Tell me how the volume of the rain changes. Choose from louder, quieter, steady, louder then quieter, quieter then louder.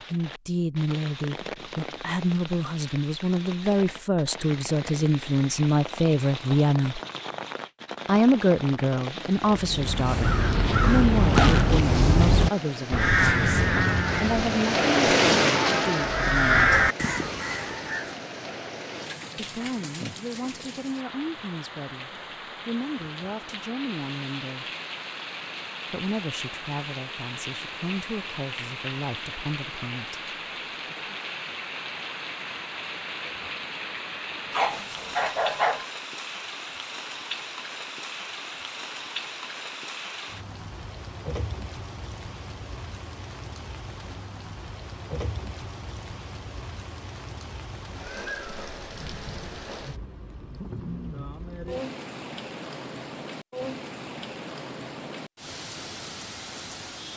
louder then quieter.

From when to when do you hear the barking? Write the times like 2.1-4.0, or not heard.
34.5-35.9.